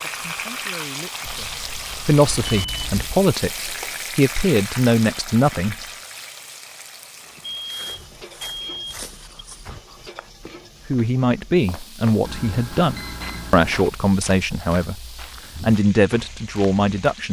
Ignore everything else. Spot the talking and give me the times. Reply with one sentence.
The talking can be heard from 0.0 to 5.8 s and from 10.8 to 17.2 s.